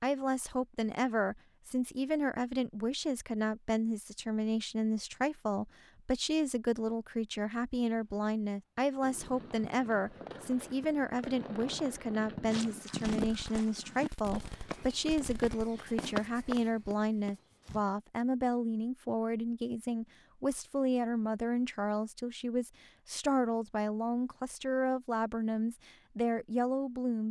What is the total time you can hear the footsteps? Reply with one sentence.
You can hear the footsteps for 5 seconds altogether.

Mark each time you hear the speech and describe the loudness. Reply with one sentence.
The speech can be heard from 0.0 to 27.2 s, at a steady volume.